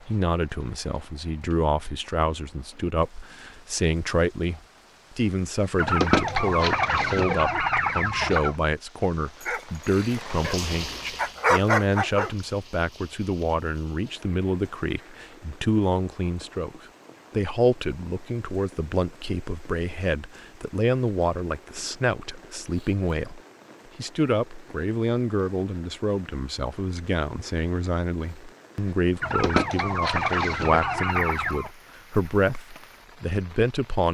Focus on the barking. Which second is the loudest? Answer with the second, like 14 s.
12 s.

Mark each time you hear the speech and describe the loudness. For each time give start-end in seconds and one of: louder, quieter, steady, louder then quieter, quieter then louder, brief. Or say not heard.
0.0-34.0 steady.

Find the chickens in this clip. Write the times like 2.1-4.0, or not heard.
5.8-8.6, 29.2-31.7.